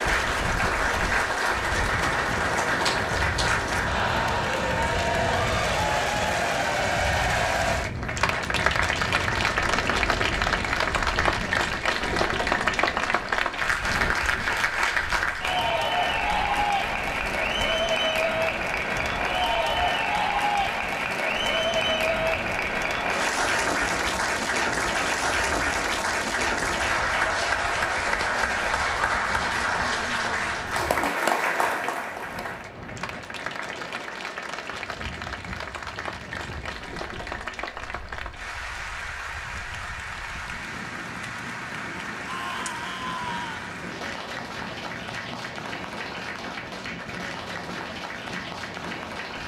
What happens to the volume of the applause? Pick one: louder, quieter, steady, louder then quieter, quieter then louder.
quieter.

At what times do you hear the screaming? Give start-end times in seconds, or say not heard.
42.2-43.8.